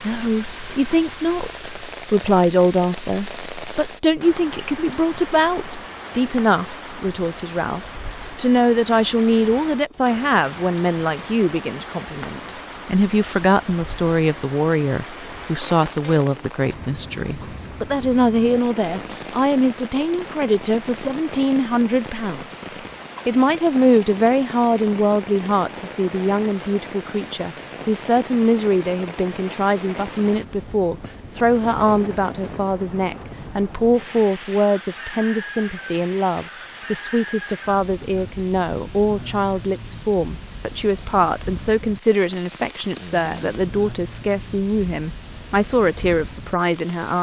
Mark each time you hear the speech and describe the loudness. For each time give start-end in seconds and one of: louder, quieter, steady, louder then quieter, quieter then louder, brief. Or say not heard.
0.0-47.1 steady.